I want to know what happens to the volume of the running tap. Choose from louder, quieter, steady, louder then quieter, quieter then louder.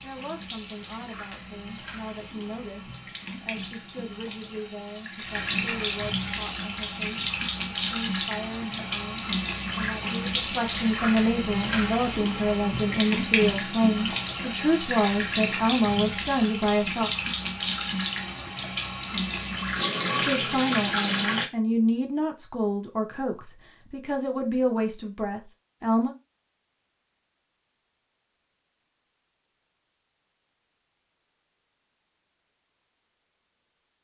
louder.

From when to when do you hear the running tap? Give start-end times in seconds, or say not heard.
0.0-21.4.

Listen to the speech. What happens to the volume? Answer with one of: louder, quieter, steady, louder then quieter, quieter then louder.
louder.